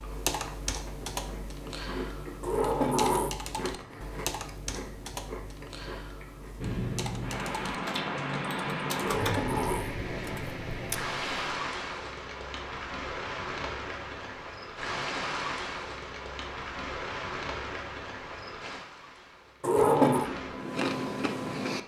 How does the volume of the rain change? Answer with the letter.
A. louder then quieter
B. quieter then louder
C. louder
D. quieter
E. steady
D.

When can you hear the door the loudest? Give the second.
20 s.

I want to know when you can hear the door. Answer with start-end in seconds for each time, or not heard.
2.4-3.4, 8.9-9.9, 19.6-20.3.